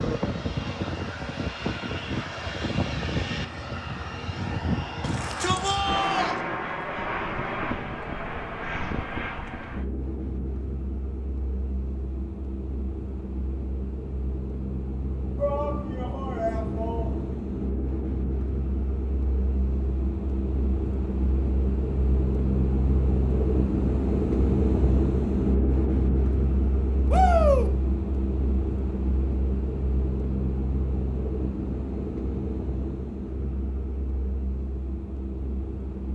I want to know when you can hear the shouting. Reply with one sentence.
The shouting can be heard from 5.0 to 6.3 s, from 15.3 to 17.3 s and from 27.1 to 27.7 s.